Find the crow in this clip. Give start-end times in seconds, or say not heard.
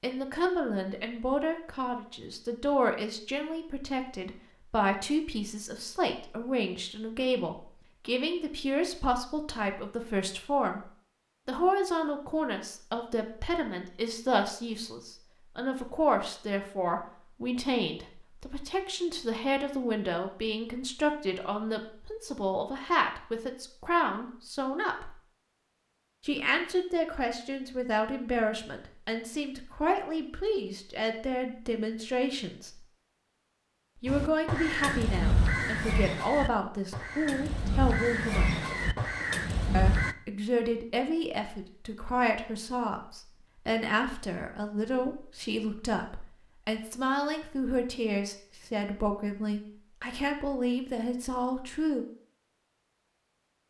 34.0-40.1.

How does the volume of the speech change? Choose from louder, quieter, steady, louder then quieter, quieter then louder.
steady.